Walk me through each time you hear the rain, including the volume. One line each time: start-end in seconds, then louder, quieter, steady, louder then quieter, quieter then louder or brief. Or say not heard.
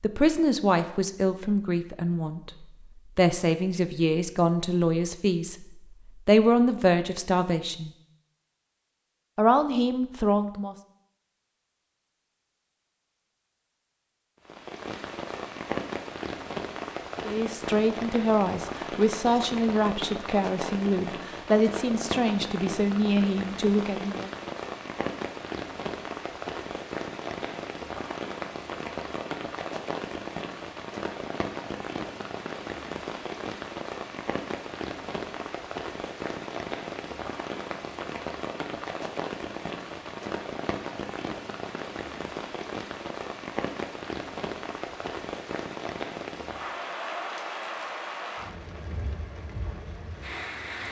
14.4-50.8 steady.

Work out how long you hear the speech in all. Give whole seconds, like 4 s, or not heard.
16 s.